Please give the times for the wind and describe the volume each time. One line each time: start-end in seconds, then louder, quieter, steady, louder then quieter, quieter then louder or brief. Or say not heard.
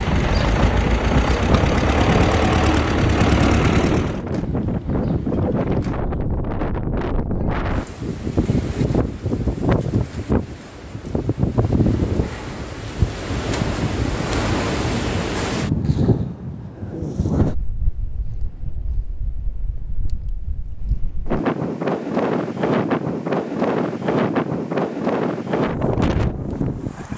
0.0-27.1 quieter then louder.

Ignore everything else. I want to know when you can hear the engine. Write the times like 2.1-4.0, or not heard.
0.0-4.2.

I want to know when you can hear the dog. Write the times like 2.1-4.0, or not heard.
not heard.